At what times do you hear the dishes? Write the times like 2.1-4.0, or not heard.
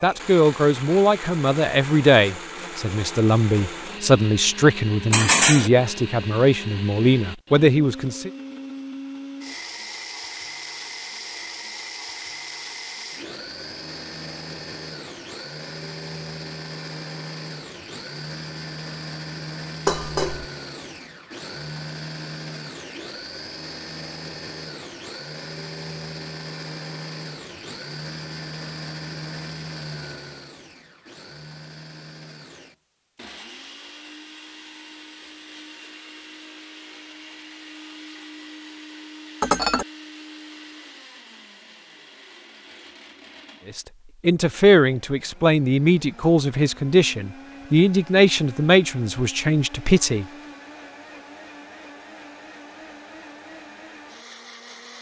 5.1-5.7, 19.9-20.4, 39.4-39.9.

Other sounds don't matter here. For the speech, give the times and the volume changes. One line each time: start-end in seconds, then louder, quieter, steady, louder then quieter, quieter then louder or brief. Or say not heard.
0.0-8.3 steady
43.6-50.2 steady.